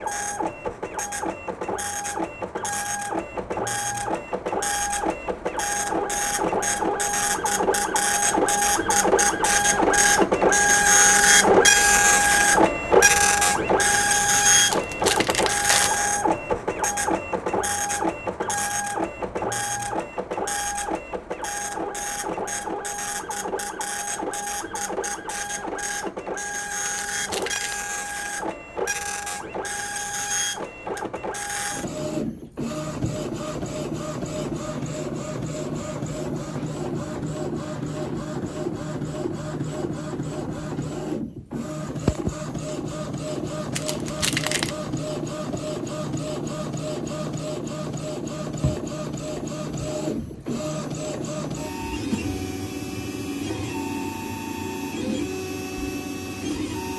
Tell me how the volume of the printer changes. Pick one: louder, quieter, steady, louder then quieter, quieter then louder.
quieter.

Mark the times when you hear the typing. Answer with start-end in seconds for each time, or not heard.
not heard.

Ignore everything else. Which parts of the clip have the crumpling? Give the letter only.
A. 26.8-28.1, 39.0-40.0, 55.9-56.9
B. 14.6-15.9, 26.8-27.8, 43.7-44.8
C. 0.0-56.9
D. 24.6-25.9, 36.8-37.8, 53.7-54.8
B.